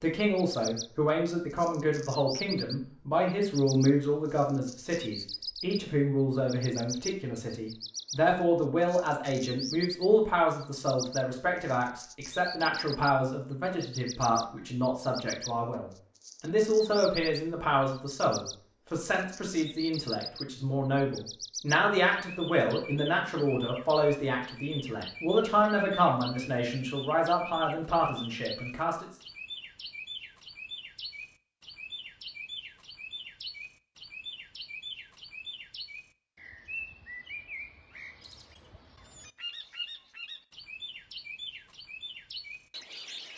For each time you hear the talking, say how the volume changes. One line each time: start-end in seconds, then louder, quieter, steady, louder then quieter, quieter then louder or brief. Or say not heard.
0.0-29.1 steady.